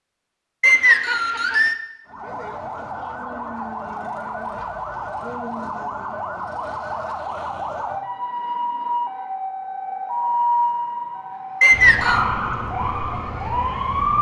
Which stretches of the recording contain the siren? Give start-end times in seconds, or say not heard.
2.0-14.1.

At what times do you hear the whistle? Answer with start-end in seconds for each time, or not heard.
0.6-1.8, 11.6-12.2.